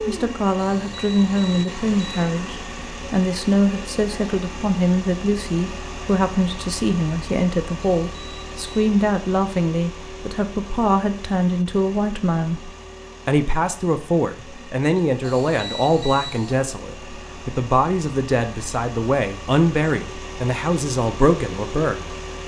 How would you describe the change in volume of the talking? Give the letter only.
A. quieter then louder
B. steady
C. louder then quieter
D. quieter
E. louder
B.